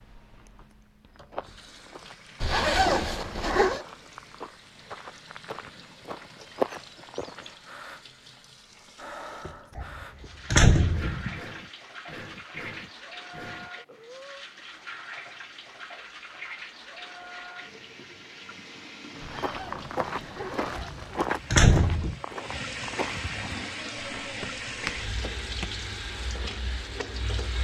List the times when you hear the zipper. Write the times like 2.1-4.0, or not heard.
2.4-3.8, 19.4-20.9.